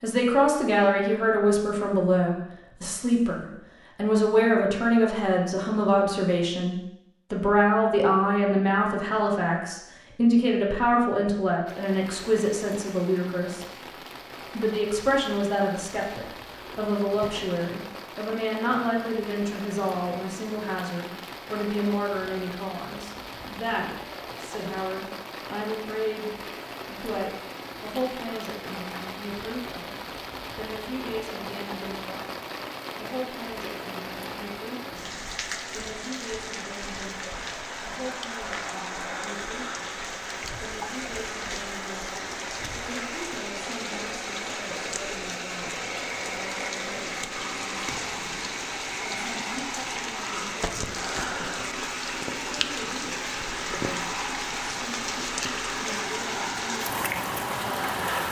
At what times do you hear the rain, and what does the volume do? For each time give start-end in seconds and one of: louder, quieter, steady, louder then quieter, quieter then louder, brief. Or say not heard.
11.7-58.2 louder.